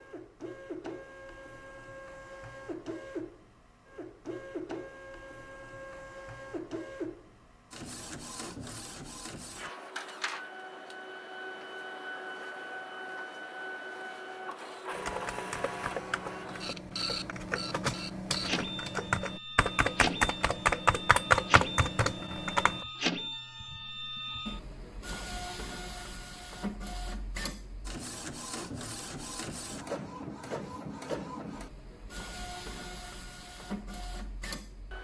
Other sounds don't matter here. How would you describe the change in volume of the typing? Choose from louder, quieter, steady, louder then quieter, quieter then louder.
louder.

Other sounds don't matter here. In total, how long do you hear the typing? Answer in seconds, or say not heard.
8 s.